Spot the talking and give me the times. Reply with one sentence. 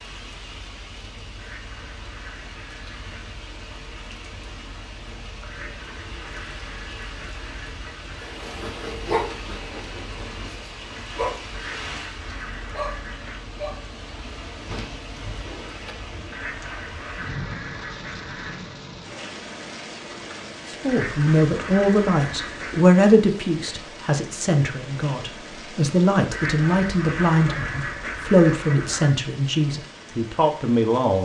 You can hear the talking from 20.6 to 31.2 s.